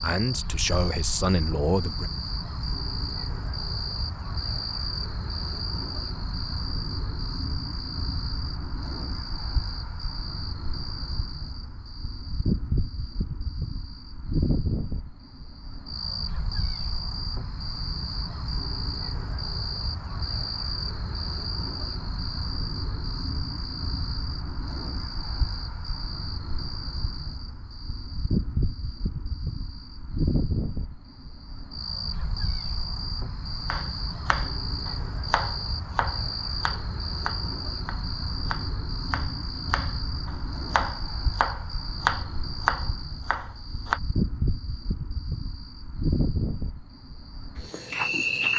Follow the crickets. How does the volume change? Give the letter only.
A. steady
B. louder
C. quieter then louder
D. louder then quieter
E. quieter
A.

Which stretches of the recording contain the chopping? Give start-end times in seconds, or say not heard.
33.7-44.0.